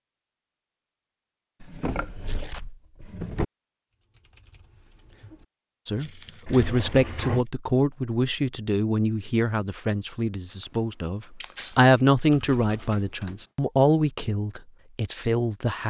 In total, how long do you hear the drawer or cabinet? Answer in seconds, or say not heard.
4 s.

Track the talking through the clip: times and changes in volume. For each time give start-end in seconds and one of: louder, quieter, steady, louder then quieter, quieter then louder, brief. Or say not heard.
5.8-15.8 quieter then louder.